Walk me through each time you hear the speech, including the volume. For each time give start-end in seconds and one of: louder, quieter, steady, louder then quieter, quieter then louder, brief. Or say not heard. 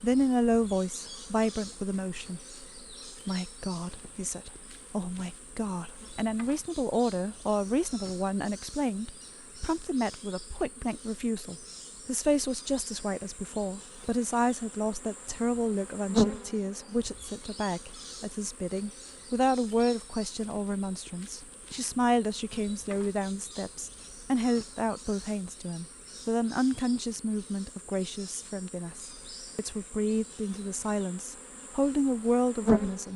0.0-2.4 brief
3.2-33.1 steady.